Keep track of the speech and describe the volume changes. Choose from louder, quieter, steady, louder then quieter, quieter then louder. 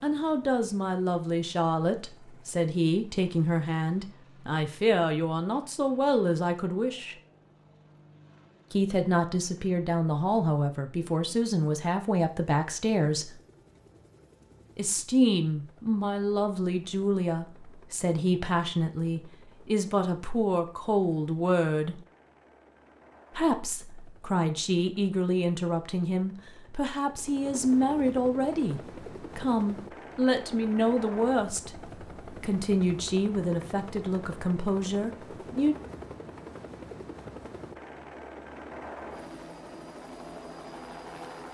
steady.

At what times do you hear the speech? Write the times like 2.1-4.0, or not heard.
0.0-7.2, 8.7-13.3, 14.8-22.0, 23.4-35.8.